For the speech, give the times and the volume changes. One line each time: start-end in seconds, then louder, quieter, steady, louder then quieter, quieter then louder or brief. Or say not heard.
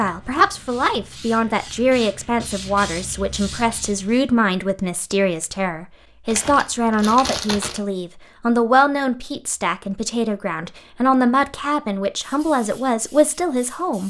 0.0-14.0 steady.